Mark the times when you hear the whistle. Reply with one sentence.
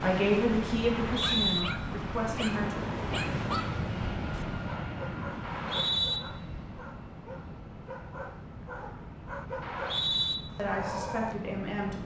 The whistle can be heard from 0.8 to 1.6 s, from 5.4 to 6.2 s and from 9.6 to 10.3 s.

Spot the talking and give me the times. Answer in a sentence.
The talking can be heard from 0.0 to 2.9 s and from 10.6 to 12.0 s.